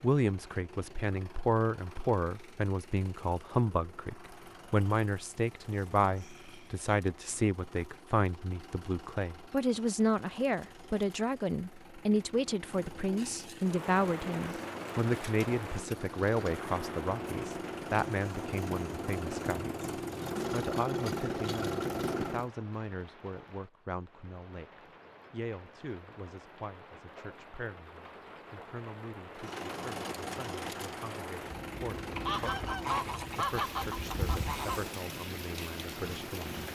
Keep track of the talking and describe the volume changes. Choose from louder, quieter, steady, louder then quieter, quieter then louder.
quieter.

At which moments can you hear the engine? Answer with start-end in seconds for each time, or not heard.
0.0-22.5, 29.3-36.6.